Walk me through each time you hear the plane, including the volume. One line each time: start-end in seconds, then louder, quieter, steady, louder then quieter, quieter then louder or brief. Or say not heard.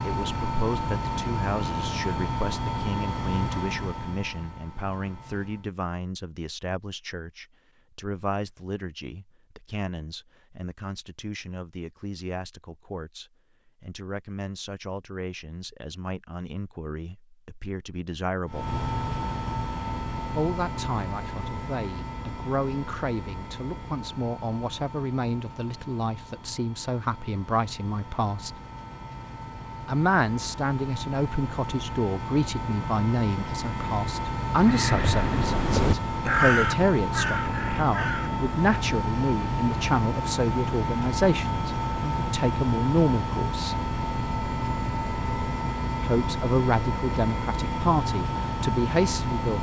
0.0-5.7 quieter
18.4-49.5 quieter then louder.